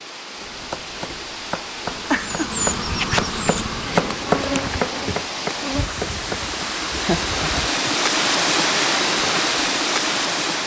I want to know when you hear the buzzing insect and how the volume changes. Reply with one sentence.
The buzzing insect can be heard from 1.9 to 7.7 s, getting quieter.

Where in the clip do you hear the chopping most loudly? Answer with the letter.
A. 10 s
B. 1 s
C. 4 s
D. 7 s
C.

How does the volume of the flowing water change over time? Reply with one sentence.
The volume of the flowing water goes up.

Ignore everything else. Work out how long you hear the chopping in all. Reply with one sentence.
You can hear the chopping for 6 seconds altogether.